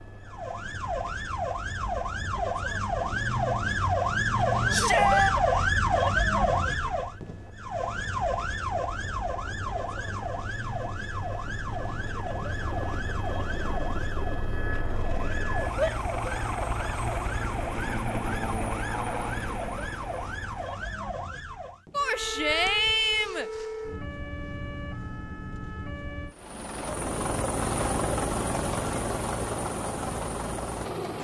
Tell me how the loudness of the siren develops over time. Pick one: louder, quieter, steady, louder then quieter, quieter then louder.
quieter.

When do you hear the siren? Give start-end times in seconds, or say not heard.
0.0-26.4.